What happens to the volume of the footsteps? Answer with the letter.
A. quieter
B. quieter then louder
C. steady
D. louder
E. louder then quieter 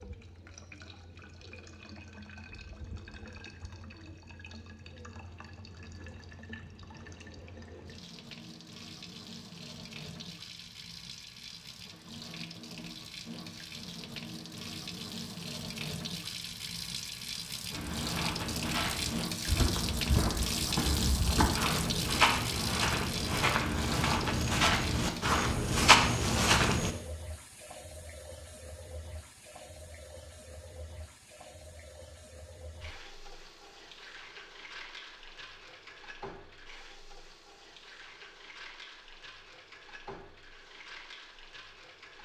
D.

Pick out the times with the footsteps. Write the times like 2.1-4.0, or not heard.
17.7-26.9.